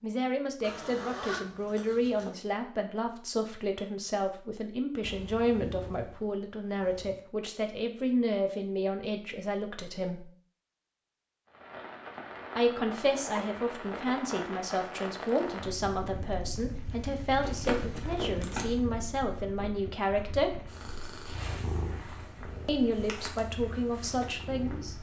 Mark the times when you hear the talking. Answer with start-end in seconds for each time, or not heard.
0.0-10.2, 12.6-20.6, 22.6-24.9.